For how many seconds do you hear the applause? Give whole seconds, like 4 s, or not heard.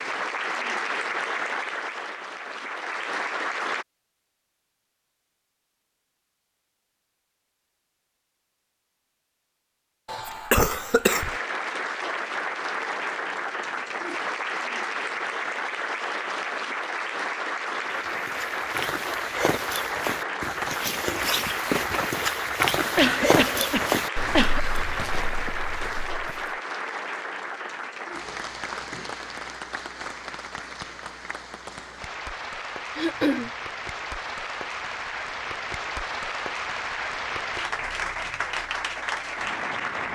33 s.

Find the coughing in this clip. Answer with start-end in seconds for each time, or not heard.
10.1-11.3, 22.9-24.6, 33.0-33.5.